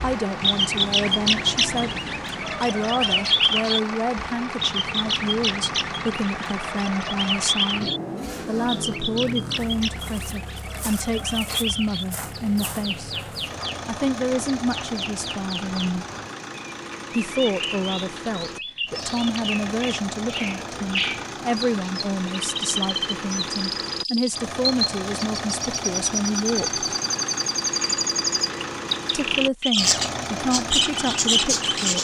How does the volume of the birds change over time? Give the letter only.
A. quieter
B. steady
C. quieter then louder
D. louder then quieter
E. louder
C.